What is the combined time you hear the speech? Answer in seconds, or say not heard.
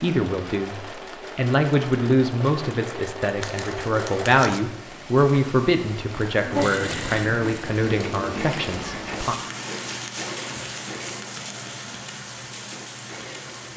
9 s.